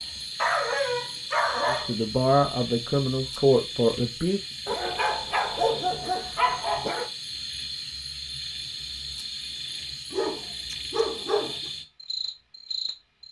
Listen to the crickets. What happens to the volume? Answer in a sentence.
The volume of the crickets stays about the same.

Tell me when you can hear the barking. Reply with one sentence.
You can hear the barking from 0.3 to 1.9 s, from 4.7 to 7.1 s and from 10.1 to 11.7 s.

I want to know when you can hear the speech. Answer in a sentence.
You can hear the speech from 1.6 to 4.5 s.